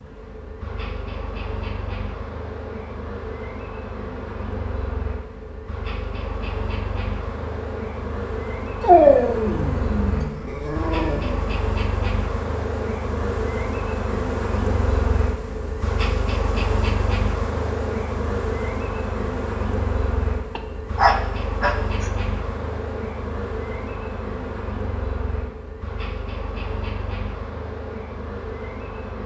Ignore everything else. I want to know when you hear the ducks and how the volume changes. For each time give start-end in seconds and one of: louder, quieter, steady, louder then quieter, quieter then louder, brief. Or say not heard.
not heard.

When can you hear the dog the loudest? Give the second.
9 s.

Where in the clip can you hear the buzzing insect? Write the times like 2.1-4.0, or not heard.
0.0-29.2.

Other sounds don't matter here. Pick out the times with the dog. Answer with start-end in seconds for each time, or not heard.
8.8-11.4, 20.6-22.1.